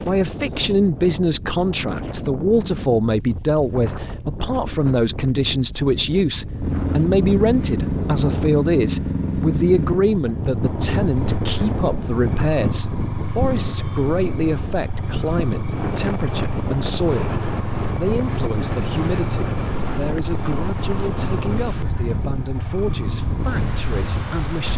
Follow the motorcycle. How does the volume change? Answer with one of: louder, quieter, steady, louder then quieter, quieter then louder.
quieter.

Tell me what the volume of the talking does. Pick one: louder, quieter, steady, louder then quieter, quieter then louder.
quieter.